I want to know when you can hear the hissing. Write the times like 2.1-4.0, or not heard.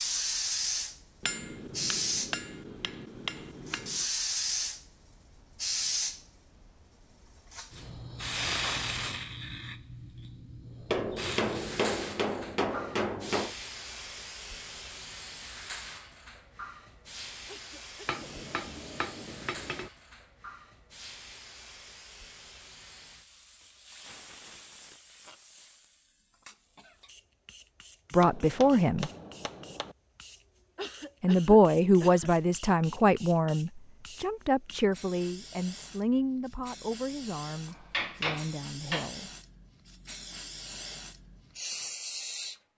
0.0-42.7.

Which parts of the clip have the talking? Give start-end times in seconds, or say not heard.
28.1-29.1, 31.2-39.3.